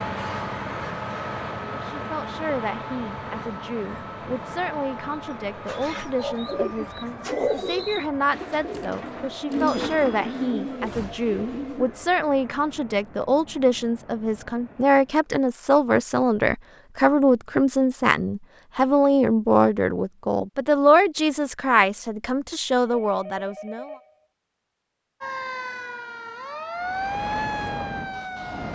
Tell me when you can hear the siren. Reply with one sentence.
You can hear the siren from 25.2 to 28.7 s.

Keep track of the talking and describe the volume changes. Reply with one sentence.
The loudness of the talking goes up.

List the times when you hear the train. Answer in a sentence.
The train can be heard from 0.0 to 15.3 s and from 26.8 to 28.7 s.